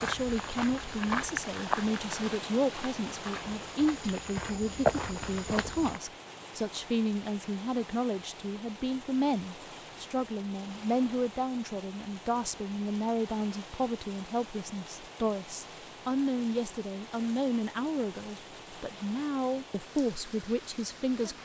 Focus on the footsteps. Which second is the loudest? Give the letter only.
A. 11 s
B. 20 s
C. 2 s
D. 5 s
D.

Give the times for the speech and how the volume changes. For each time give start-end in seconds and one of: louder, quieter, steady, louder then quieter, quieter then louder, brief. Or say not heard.
0.0-21.4 steady.